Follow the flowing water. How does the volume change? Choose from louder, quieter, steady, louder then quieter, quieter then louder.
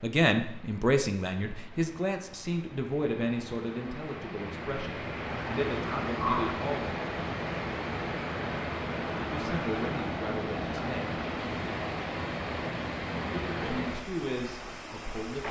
louder.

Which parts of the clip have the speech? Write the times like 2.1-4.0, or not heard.
0.0-6.9, 9.2-11.2, 13.3-15.4.